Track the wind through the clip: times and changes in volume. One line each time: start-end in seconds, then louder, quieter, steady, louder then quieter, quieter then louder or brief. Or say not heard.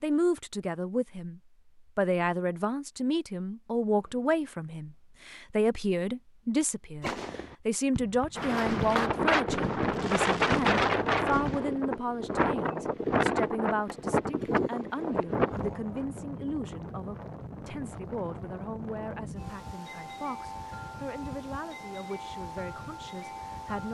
8.3-23.8 quieter.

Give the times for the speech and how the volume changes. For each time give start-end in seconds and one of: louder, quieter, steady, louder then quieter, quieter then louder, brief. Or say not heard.
0.0-23.8 quieter.